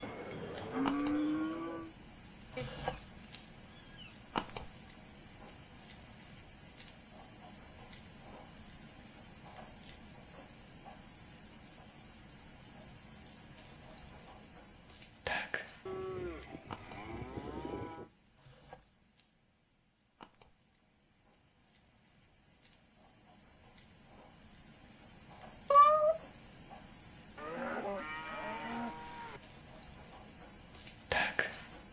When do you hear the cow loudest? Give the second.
1 s.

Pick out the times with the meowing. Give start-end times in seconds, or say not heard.
2.5-4.1, 25.7-26.2.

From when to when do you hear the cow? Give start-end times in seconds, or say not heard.
0.0-1.9, 15.8-18.1, 27.4-29.4.